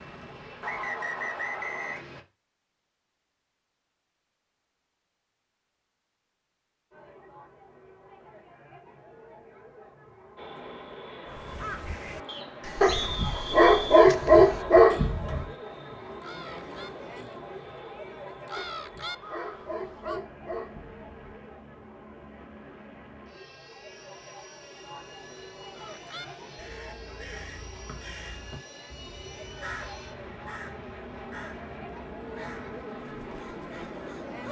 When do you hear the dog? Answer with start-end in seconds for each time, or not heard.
12.8-15.4, 18.6-21.3.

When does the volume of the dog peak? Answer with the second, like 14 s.
14 s.